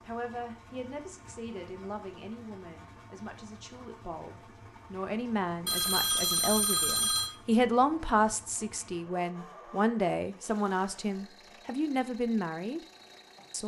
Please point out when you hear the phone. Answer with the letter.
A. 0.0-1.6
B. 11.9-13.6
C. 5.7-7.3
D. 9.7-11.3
C.